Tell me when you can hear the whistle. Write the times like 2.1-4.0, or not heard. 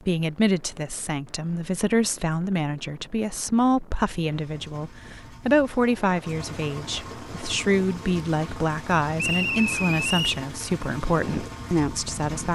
9.2-10.4.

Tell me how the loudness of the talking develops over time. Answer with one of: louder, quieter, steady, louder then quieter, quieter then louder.
steady.